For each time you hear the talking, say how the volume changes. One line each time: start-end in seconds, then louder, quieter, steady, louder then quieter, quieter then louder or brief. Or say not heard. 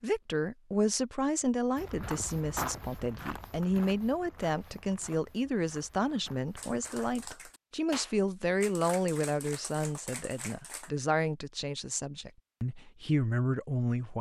0.0-14.1 steady.